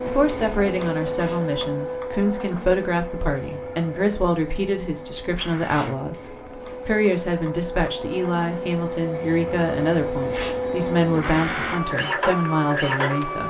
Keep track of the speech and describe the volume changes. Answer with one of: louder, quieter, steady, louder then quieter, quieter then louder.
steady.